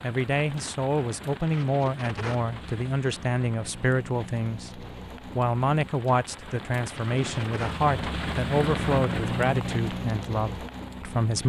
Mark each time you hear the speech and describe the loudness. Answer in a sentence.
You can hear the speech from 0.0 to 11.4 s, at a steady volume.